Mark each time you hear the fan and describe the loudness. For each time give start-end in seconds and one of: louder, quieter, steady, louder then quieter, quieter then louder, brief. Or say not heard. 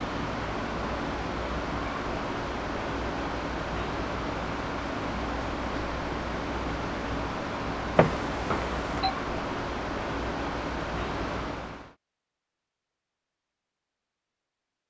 0.0-11.9 steady.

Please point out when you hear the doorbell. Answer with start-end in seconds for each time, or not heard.
8.0-9.2.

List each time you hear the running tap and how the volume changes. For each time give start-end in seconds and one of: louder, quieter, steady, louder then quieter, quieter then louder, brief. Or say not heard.
not heard.